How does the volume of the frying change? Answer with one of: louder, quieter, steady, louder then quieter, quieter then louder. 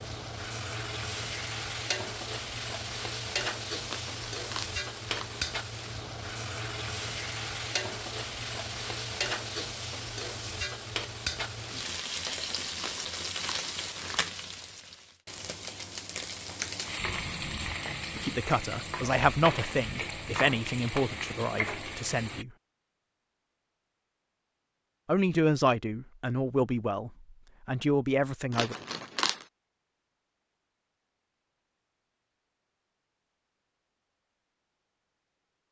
steady.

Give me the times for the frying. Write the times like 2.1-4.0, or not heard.
0.0-22.4.